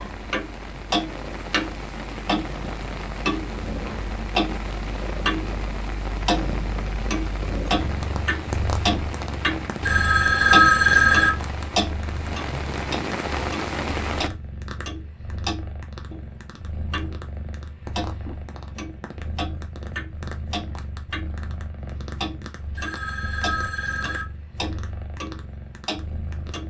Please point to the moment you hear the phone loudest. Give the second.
11 s.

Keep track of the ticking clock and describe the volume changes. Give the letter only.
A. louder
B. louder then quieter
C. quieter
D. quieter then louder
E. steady
C.